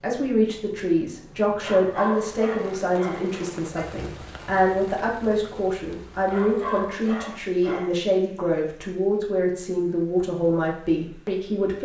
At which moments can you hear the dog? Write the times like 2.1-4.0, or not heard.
1.6-3.3, 6.2-8.0.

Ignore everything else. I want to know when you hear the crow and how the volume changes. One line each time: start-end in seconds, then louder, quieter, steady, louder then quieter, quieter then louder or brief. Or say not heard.
not heard.